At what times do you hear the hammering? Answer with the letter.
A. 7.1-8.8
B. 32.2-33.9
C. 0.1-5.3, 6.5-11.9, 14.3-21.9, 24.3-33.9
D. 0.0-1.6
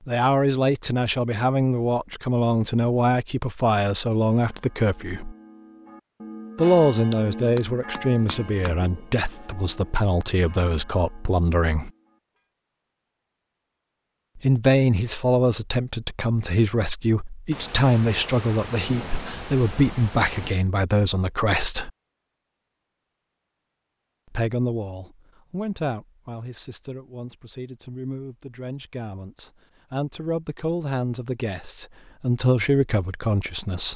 A.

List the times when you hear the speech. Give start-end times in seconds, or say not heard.
0.1-5.3, 6.5-11.9, 14.3-21.9, 24.3-33.9.